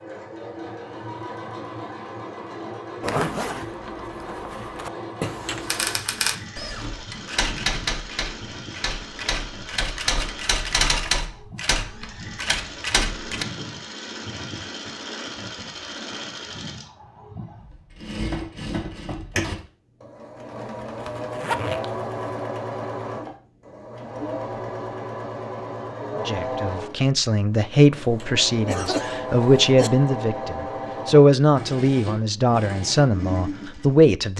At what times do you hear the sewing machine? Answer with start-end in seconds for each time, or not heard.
0.0-34.3.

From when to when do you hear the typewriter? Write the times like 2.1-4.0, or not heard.
5.6-13.4.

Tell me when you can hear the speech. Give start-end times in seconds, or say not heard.
26.1-34.3.